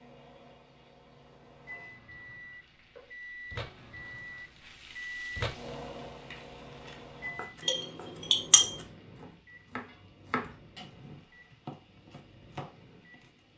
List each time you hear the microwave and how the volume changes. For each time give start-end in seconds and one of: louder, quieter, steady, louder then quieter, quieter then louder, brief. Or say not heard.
0.0-13.5 louder then quieter.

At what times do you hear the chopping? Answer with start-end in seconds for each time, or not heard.
6.2-13.4.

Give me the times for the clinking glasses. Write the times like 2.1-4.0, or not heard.
7.6-8.8.